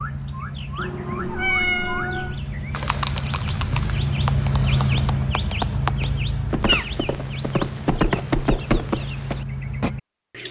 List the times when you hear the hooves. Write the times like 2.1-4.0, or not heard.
2.7-9.9.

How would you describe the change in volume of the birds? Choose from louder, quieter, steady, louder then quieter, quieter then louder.
louder then quieter.